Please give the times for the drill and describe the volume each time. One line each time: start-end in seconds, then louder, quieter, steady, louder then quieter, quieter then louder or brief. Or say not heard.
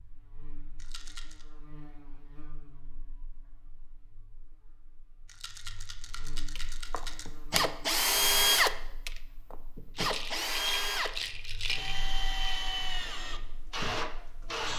6.5-14.7 quieter.